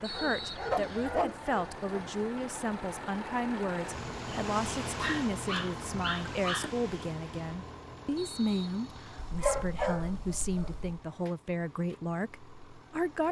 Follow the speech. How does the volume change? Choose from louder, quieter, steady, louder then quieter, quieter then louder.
steady.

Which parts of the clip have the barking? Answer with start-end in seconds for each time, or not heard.
0.1-2.0, 5.0-6.8, 9.2-10.9.